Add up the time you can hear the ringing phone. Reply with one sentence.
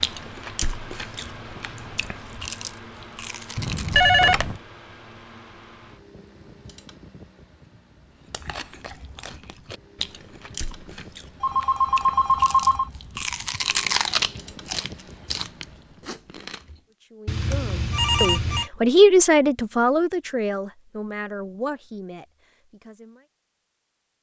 You can hear the ringing phone for 4 seconds altogether.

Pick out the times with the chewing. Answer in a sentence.
You can hear the chewing from 0.0 to 4.2 s and from 8.2 to 16.8 s.